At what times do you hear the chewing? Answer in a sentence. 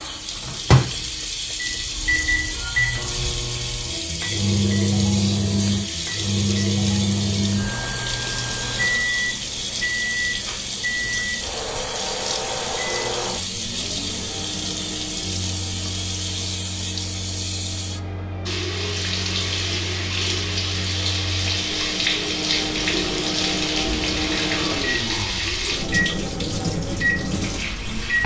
You can't hear the chewing here.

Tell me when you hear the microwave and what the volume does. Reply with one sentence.
The microwave can be heard from 0.0 to 28.2 s, getting quieter then louder.